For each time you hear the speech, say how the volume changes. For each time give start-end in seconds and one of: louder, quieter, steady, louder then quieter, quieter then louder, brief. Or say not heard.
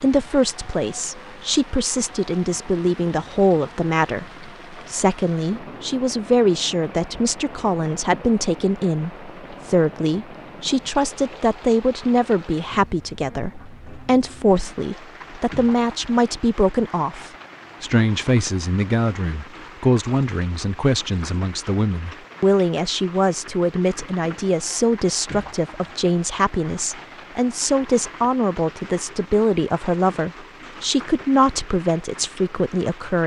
0.0-33.2 steady.